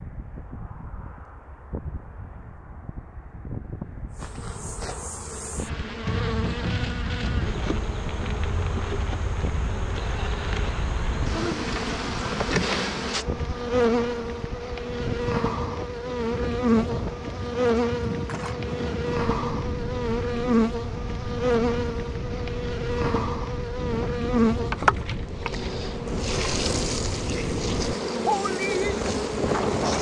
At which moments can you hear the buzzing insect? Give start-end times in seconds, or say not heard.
4.2-29.9.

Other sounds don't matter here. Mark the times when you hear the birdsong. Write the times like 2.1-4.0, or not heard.
not heard.